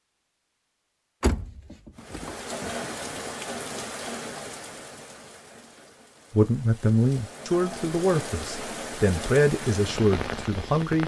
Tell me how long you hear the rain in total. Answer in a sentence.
The rain can be heard for 9 seconds in total.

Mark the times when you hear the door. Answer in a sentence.
The door can be heard from 1.2 to 2.9 s.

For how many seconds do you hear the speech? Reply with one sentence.
You can hear the speech for 5 seconds altogether.